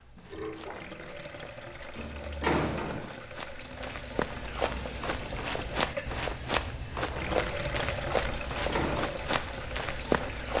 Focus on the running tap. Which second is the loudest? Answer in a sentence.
The loudest moment of the running tap is at 8 seconds.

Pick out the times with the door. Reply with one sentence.
You can hear the door from 1.9 to 3.0 s and from 8.2 to 9.1 s.